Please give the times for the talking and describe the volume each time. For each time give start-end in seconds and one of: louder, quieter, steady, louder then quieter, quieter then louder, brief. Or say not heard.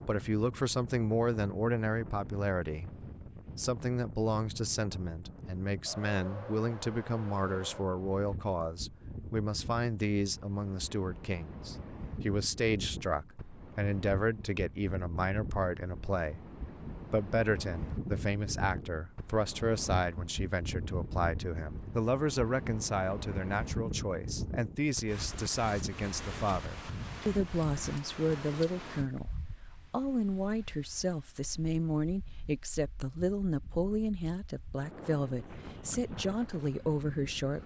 0.1-37.6 steady.